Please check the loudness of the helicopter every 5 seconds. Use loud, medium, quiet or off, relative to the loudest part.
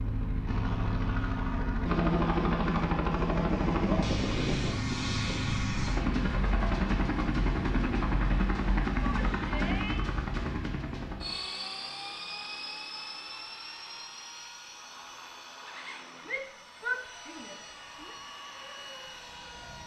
loud, loud, medium, quiet.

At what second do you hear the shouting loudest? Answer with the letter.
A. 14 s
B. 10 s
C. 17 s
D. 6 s
C.